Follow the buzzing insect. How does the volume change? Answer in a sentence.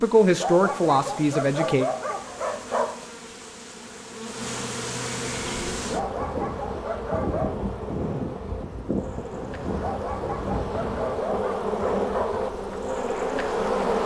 The loudness of the buzzing insect goes up.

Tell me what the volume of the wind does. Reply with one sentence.
The loudness of the wind goes down.